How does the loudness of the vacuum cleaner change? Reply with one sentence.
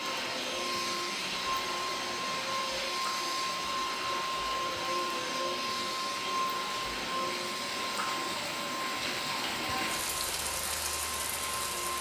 The loudness of the vacuum cleaner goes down.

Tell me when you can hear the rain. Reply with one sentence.
You can hear the rain from 0.0 to 11.9 s.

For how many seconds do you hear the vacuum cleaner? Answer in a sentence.
The vacuum cleaner can be heard for 12 seconds in total.